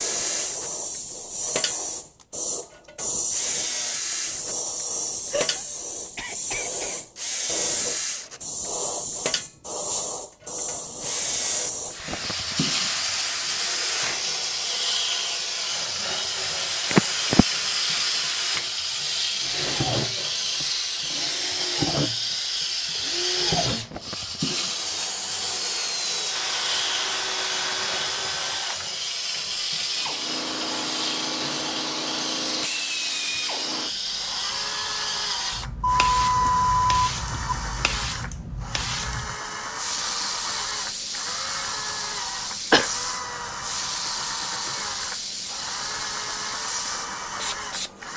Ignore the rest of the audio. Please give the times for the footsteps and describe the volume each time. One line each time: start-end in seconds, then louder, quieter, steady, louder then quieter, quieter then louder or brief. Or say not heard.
not heard.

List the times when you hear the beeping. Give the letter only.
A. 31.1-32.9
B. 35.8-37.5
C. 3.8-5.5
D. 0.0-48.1
B.